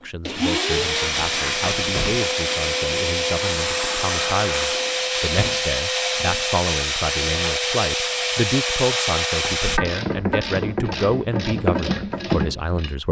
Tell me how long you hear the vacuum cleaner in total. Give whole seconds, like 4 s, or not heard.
10 s.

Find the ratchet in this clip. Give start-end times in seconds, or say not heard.
9.7-12.9.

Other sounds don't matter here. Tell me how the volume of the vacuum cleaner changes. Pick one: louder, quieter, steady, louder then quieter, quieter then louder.
steady.